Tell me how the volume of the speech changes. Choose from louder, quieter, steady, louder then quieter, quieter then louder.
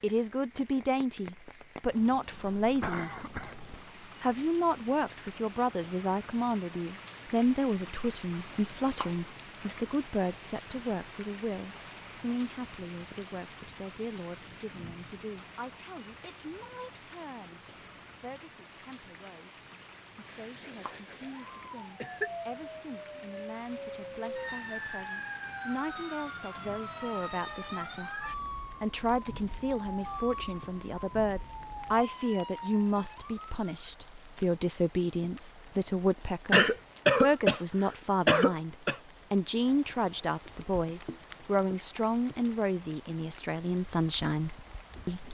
quieter then louder.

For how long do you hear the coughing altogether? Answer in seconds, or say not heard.
6 s.